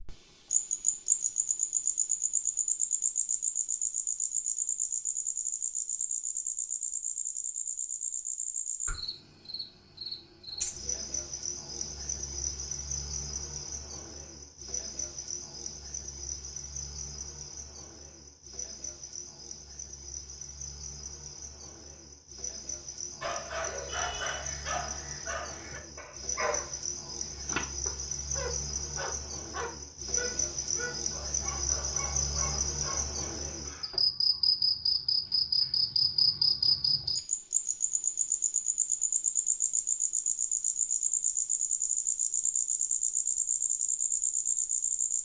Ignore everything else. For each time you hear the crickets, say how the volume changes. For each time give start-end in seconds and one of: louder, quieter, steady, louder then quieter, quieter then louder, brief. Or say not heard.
0.0-45.2 quieter then louder.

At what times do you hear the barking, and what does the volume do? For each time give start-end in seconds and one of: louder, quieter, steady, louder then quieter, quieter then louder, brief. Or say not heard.
23.2-34.0 quieter.